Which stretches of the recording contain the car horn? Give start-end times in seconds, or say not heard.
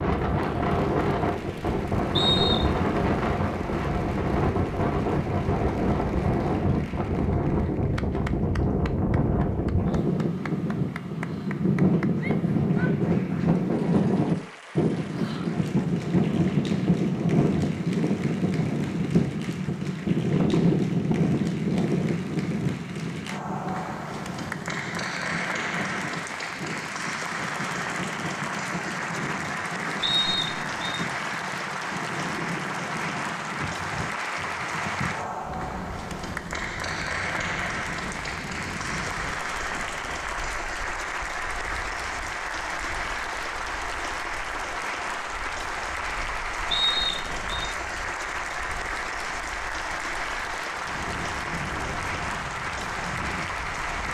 not heard.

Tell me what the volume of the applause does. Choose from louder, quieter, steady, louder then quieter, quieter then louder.
louder.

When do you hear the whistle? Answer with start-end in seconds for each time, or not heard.
2.1-2.8, 30.0-31.0, 46.7-47.6.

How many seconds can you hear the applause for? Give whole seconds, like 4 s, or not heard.
54 s.